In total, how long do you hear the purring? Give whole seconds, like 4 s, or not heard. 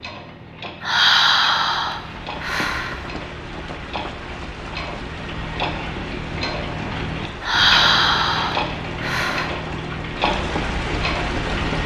not heard.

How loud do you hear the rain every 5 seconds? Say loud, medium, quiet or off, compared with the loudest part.
medium, medium, loud.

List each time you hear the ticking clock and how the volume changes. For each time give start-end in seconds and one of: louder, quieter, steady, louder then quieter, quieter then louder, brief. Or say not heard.
0.0-11.8 louder.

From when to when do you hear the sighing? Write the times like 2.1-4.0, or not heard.
0.8-3.0, 7.4-9.5.